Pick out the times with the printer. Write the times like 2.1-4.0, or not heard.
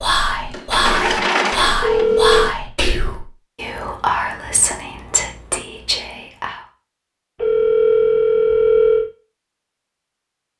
0.1-2.5.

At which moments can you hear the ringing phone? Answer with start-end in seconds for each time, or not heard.
1.8-2.5, 7.3-9.1.